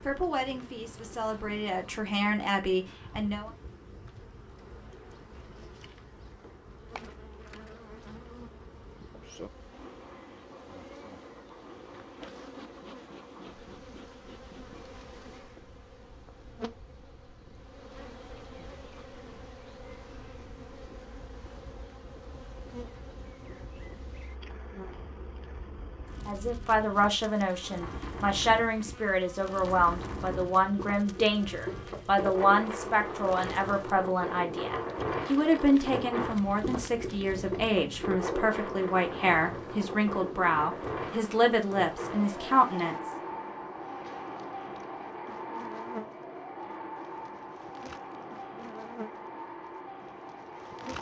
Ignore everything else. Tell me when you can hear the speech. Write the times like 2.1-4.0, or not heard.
0.0-3.5, 26.2-43.1.